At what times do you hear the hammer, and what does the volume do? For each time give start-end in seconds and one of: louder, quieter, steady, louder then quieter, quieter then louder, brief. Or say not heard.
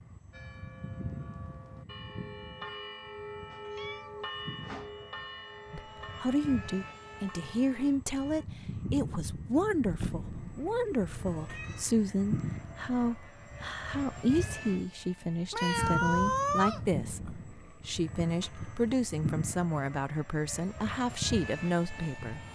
not heard.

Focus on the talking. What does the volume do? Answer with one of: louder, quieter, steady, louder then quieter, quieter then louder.
steady.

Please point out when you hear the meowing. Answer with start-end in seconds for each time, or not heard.
3.5-5.1, 9.8-11.8, 15.5-17.4.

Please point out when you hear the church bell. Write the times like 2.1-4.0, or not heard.
0.3-8.4.